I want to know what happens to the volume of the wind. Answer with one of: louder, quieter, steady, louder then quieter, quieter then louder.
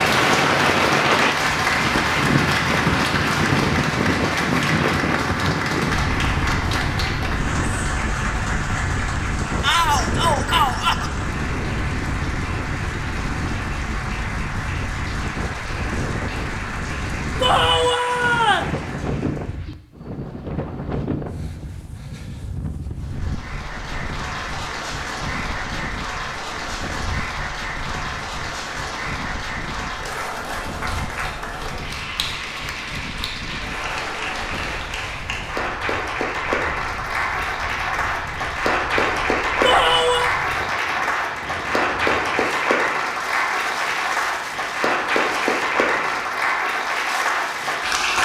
quieter.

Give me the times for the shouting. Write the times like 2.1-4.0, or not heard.
9.6-11.1, 17.4-18.8, 39.6-40.3.